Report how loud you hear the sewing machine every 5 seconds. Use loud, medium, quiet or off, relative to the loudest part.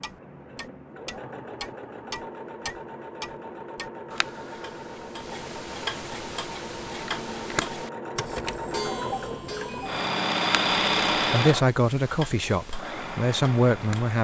quiet, medium, loud.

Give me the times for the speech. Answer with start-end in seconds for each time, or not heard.
11.2-14.2.